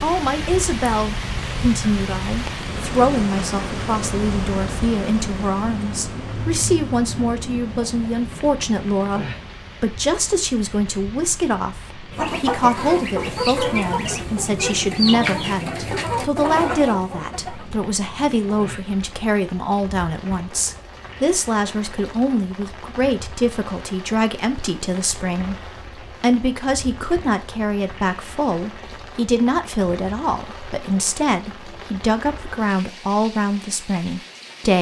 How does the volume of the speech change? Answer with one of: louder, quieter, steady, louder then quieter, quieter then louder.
steady.